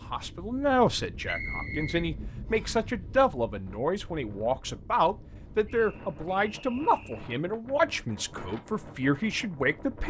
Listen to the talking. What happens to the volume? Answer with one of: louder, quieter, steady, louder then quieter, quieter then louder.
steady.